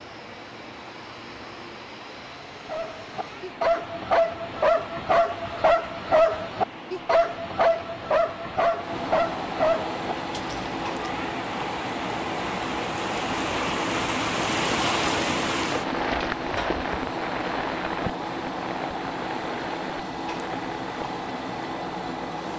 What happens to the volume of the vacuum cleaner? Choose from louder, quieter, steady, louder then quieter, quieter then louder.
louder.